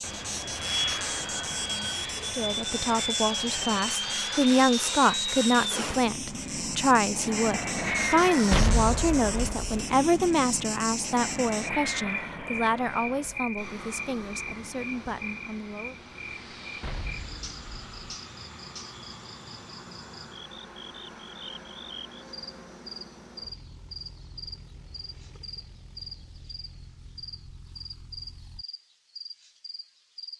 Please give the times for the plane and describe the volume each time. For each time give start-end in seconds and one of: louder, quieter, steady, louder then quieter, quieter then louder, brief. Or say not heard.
0.0-28.6 quieter.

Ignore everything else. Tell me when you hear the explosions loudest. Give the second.
9 s.